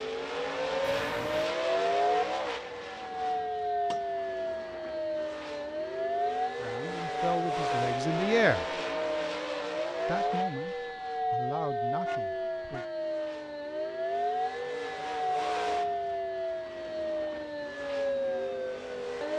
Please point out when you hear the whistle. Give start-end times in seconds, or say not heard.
not heard.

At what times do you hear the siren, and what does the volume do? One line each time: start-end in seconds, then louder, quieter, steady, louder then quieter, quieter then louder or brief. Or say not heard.
0.0-19.3 steady.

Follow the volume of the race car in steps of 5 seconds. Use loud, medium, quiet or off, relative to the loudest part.
loud, loud, medium, medium.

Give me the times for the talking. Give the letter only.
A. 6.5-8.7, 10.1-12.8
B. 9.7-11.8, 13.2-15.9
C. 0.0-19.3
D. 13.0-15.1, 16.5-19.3
A.